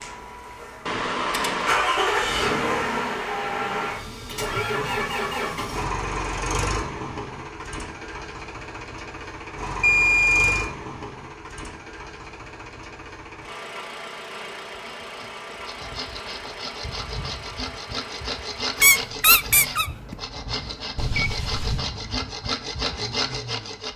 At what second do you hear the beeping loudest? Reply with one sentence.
The loudest moment of the beeping is at 10 seconds.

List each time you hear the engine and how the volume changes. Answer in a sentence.
The engine can be heard from 0.0 to 23.9 s, getting quieter.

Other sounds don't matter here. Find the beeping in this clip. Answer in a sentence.
You can hear the beeping from 0.8 to 1.8 s, from 9.8 to 10.7 s and from 20.9 to 21.8 s.